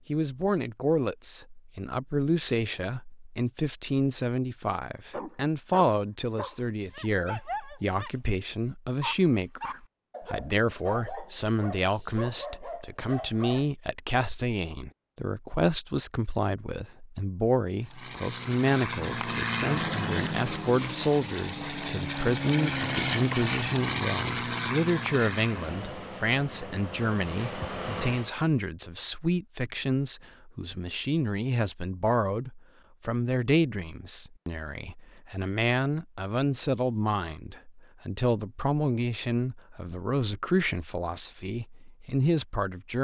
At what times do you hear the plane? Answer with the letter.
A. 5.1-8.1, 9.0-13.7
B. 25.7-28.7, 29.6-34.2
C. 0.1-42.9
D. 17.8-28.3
D.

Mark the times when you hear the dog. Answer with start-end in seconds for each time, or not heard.
5.1-8.1, 9.0-13.7.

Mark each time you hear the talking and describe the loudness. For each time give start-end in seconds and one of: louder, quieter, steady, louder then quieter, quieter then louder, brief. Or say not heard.
0.1-42.9 steady.